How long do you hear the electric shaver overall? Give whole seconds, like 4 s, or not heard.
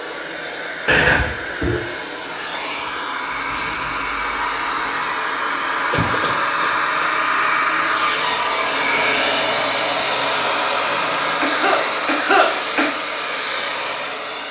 2 s.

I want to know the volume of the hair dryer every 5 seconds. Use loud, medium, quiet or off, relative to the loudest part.
medium, loud, loud.